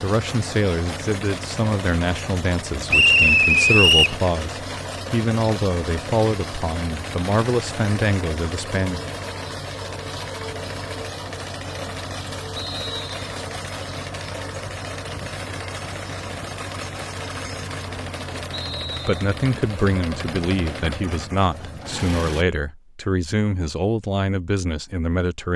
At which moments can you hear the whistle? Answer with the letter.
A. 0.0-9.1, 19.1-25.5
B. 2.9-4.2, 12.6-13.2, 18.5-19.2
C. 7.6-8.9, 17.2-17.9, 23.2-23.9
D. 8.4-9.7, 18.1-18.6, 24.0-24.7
B.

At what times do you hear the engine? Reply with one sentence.
You can hear the engine from 0.0 to 22.4 s.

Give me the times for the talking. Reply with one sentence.
The talking can be heard from 0.0 to 9.1 s and from 19.1 to 25.5 s.